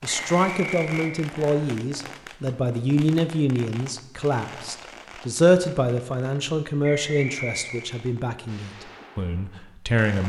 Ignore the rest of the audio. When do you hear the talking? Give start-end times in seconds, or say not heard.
0.0-10.2.